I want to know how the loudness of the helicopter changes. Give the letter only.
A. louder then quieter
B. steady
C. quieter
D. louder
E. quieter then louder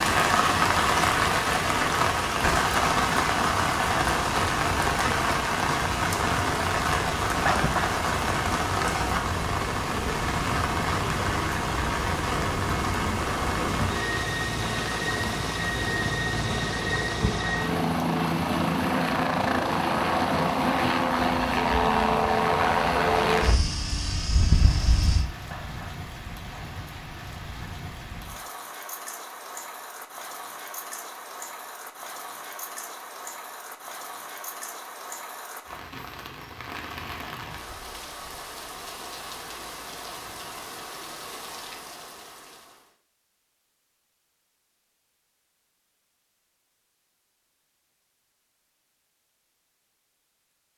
D.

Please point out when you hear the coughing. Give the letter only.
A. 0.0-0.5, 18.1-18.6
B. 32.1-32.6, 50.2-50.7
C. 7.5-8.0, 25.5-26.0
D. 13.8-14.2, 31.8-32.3
C.